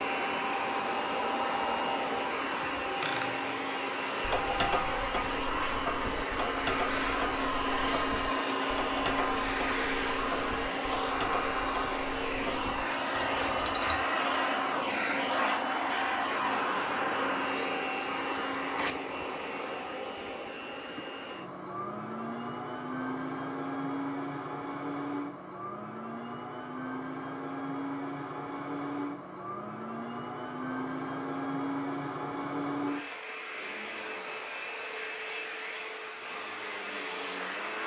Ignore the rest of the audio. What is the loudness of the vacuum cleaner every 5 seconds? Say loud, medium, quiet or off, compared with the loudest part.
loud, loud, loud, loud, medium, medium, medium, medium.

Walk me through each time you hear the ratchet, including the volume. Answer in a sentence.
The ratchet can be heard from 3.0 to 14.1 s, getting quieter.